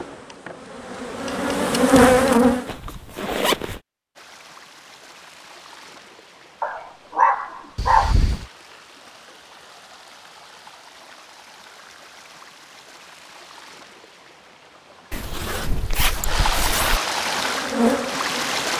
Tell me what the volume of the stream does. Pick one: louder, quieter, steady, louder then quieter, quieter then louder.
louder.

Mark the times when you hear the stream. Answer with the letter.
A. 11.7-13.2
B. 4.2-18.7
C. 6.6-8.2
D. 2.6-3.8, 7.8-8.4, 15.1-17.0
B.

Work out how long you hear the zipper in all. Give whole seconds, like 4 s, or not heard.
4 s.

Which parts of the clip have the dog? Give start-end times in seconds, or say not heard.
6.6-8.2.